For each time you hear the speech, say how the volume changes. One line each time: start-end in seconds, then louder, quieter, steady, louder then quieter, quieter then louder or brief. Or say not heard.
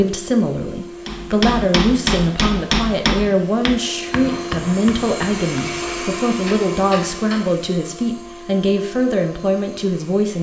0.0-10.3 steady.